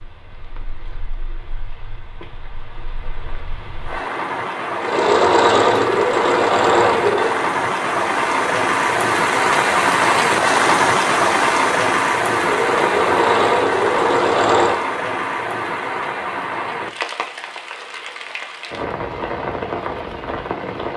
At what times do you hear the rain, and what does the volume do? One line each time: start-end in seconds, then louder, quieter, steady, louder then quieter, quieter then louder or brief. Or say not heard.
0.0-20.9 louder then quieter.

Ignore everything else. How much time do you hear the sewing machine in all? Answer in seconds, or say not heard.
5 s.